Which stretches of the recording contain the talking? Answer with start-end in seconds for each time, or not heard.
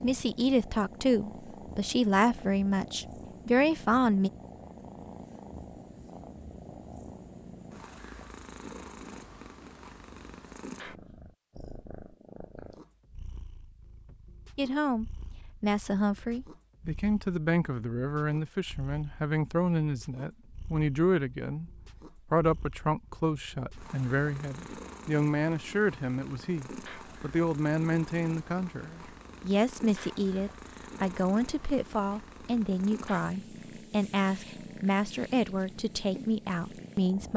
0.0-4.3, 14.6-37.3.